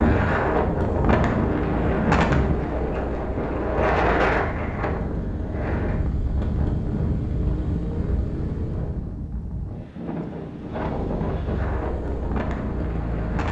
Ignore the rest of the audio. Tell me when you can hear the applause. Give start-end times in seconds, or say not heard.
not heard.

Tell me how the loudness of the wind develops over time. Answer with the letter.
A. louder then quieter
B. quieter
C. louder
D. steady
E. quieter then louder
B.